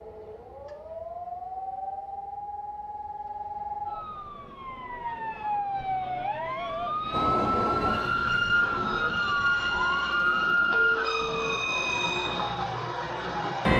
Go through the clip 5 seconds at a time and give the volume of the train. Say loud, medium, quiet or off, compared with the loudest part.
off, loud, loud.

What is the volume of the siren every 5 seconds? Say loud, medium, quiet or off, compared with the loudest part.
medium, loud, medium.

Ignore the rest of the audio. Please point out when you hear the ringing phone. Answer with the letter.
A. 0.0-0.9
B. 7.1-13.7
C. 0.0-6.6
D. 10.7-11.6
D.